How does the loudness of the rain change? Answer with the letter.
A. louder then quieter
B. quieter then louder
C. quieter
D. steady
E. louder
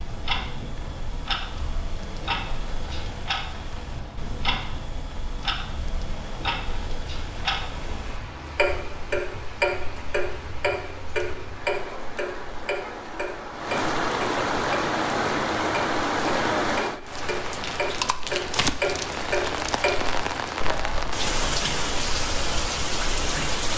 E.